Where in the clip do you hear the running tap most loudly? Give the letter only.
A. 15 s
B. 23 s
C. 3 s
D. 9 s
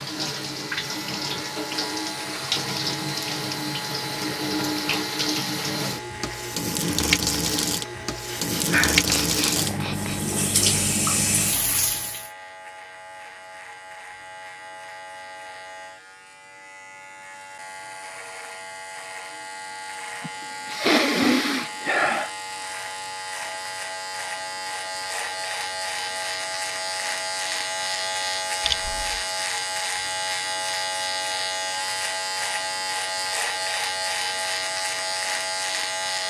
D.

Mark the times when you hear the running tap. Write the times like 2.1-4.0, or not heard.
0.0-12.3.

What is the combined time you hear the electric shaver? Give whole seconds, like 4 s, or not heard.
36 s.